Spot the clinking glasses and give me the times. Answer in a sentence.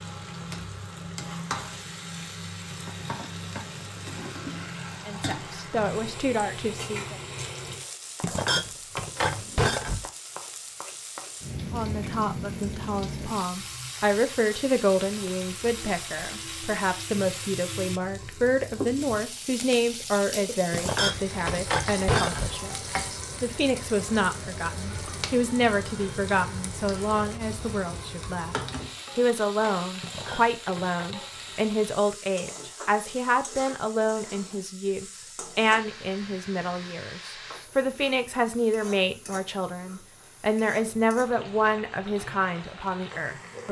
The clinking glasses can be heard from 8.2 to 10.1 s, from 20.7 to 22.6 s and from 30.0 to 31.1 s.